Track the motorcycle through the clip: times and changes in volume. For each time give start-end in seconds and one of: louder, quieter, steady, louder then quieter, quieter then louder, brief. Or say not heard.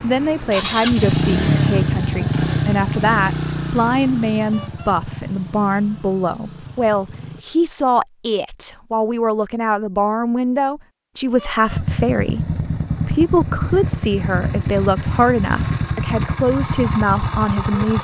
0.0-7.5 quieter
11.7-17.9 steady.